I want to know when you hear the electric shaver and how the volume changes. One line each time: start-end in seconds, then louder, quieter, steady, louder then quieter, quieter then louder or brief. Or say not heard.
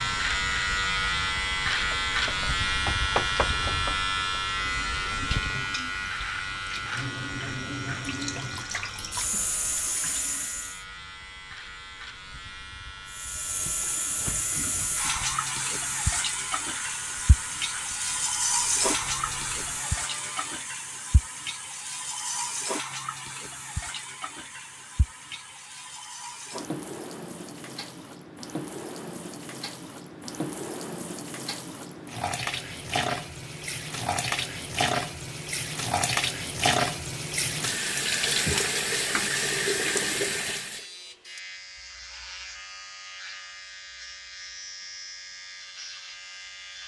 0.0-20.7 quieter
40.6-46.8 steady.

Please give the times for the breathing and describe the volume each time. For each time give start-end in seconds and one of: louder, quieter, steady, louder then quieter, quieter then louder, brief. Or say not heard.
not heard.